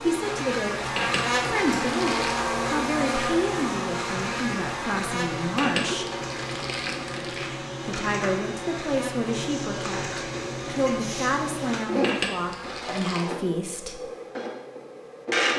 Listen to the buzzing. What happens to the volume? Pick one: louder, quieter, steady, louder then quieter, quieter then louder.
quieter.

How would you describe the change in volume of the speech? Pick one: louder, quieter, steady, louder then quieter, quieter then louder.
steady.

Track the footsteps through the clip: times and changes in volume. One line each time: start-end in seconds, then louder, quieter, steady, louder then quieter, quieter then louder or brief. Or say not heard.
not heard.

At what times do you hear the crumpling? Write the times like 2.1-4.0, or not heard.
0.9-2.5, 5.5-7.5, 12.0-13.2.